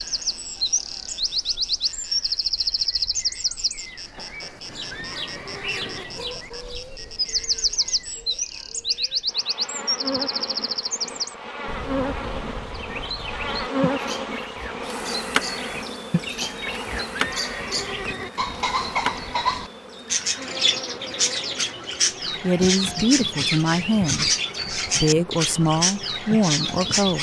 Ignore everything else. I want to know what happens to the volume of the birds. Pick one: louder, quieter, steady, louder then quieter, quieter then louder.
quieter then louder.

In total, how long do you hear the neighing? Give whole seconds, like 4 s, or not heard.
4 s.